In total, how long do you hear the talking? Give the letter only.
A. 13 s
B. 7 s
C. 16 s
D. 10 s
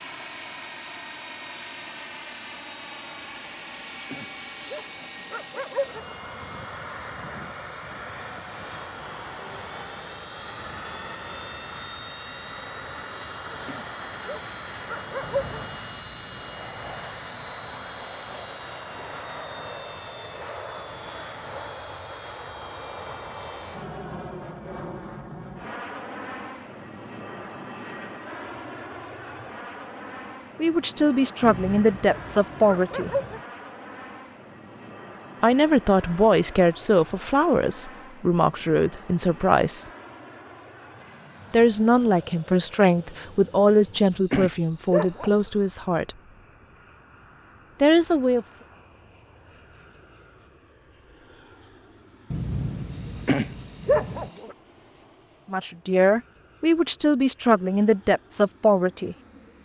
C.